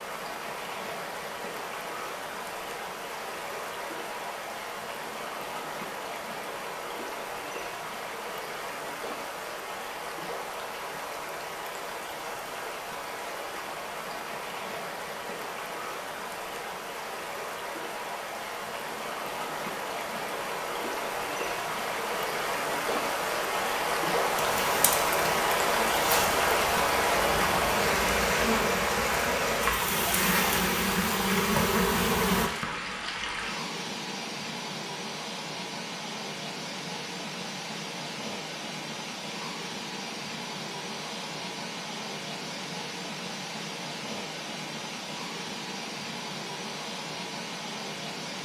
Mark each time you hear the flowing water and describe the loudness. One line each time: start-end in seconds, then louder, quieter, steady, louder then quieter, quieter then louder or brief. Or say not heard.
0.0-48.4 louder then quieter.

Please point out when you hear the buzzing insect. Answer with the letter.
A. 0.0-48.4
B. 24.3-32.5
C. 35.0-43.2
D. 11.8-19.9
B.